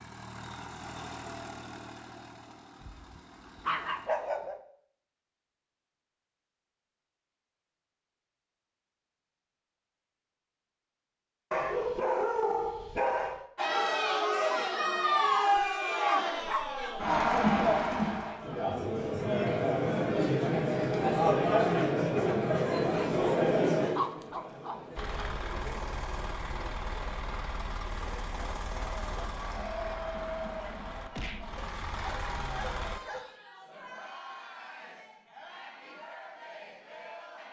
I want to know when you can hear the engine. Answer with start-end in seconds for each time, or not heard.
0.0-4.1, 24.9-33.0.